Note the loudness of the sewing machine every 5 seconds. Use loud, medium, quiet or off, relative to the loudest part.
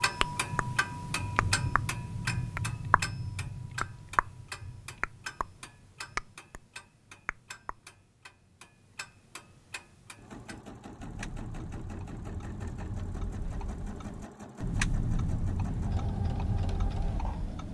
off, off, loud, loud.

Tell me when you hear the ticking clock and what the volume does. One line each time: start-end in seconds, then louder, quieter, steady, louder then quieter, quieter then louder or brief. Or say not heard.
0.0-17.7 quieter then louder.